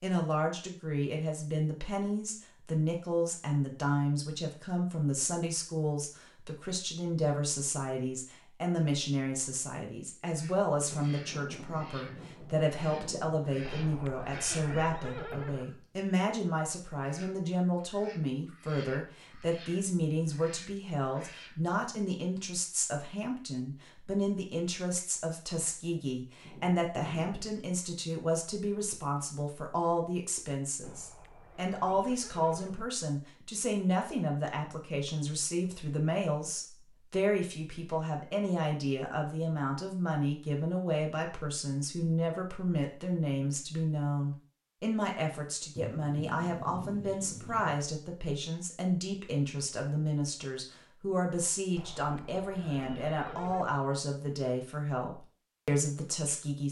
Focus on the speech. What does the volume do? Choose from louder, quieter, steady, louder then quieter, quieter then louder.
steady.